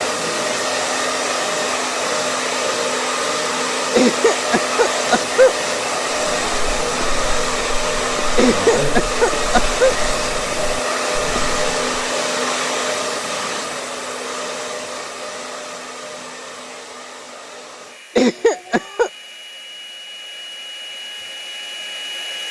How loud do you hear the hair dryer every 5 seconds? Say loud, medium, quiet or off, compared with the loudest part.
loud, loud, loud, quiet, medium.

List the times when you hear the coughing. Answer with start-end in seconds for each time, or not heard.
4.0-5.5, 8.3-9.9, 18.1-19.1.